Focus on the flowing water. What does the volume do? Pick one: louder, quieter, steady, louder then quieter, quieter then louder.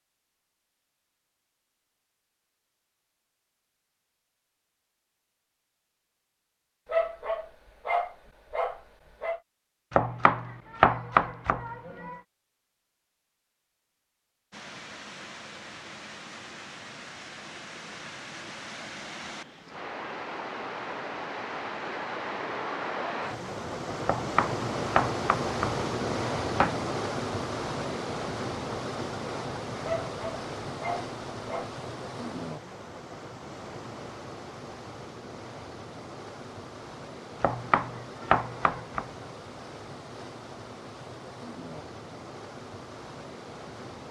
louder then quieter.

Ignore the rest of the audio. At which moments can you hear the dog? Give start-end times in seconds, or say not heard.
6.8-9.4, 29.8-31.7.